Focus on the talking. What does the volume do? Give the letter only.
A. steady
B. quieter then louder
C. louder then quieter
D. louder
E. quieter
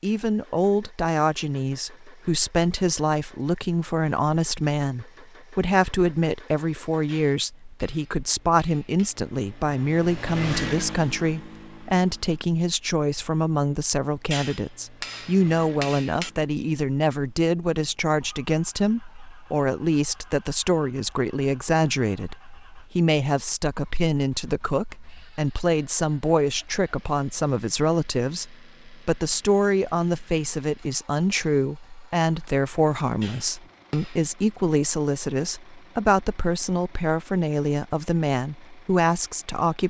A.